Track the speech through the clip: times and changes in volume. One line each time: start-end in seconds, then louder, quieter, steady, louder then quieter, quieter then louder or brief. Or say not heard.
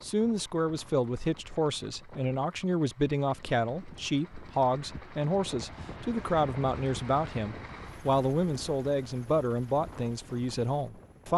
0.0-11.3 steady.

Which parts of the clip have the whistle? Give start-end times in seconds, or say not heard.
not heard.